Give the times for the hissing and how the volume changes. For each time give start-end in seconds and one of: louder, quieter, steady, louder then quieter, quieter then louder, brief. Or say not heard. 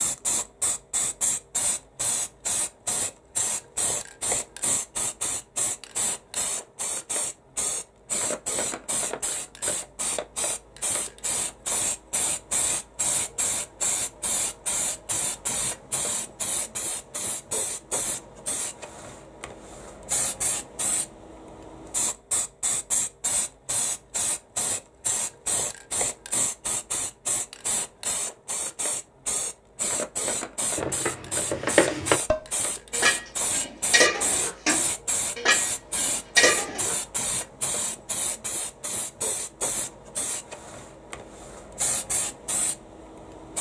0.0-43.5 steady.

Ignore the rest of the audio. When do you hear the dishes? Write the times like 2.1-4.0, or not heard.
30.8-37.0.